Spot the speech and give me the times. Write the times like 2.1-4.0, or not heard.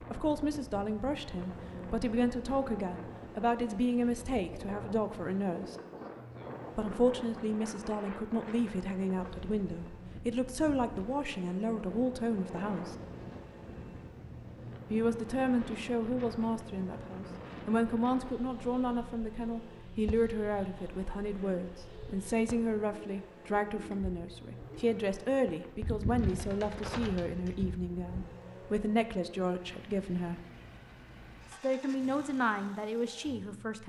0.0-5.8, 6.8-12.9, 14.9-30.4, 31.5-33.8.